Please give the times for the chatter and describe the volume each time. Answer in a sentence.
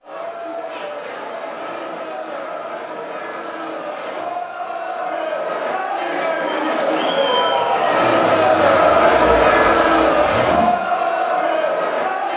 The chatter can be heard from 0.0 to 12.3 s, getting louder.